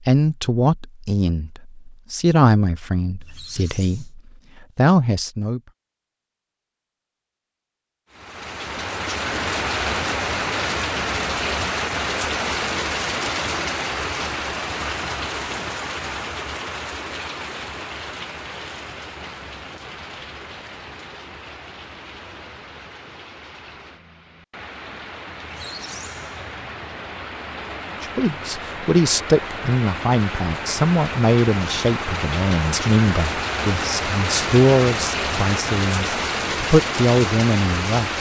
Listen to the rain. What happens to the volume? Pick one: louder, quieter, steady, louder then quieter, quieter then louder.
quieter then louder.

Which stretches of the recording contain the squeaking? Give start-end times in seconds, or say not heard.
3.2-4.2, 25.4-26.7.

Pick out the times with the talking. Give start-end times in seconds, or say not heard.
0.1-5.6, 28.0-38.1.